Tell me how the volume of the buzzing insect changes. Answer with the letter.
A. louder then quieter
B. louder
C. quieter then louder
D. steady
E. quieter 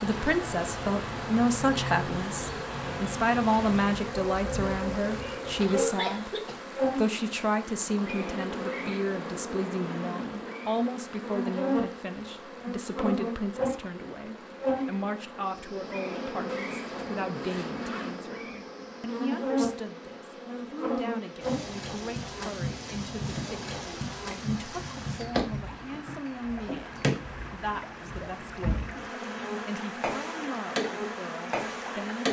D.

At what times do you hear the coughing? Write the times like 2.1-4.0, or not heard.
5.6-6.6.